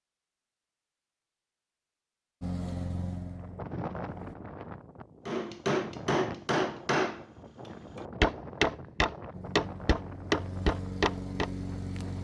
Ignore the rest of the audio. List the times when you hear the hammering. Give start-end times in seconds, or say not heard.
5.2-11.5.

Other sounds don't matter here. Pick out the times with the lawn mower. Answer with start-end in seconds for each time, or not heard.
2.4-4.3, 9.3-12.1.